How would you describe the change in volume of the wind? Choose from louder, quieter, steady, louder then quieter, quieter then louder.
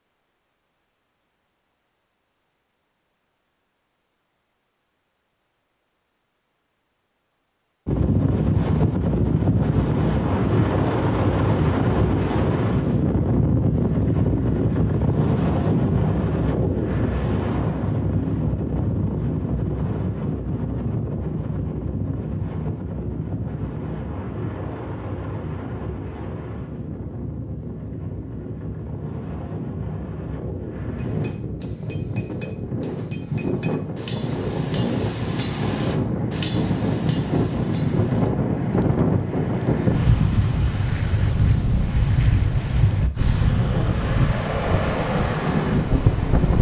quieter then louder.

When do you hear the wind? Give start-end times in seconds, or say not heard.
7.8-46.5.